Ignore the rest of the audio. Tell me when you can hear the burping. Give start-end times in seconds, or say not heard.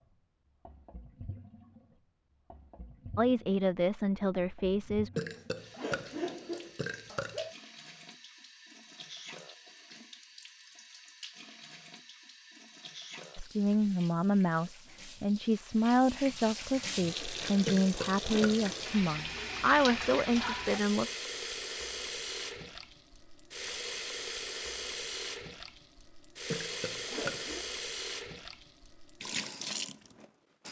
5.2-7.5, 17.6-18.7, 26.5-27.6.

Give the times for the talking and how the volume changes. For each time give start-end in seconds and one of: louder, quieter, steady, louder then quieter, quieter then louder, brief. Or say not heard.
3.1-5.1 brief
13.3-21.1 steady.